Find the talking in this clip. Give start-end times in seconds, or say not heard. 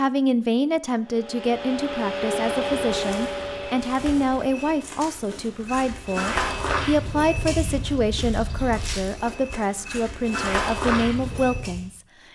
0.0-12.0.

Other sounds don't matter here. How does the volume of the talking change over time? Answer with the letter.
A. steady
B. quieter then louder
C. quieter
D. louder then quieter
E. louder
A.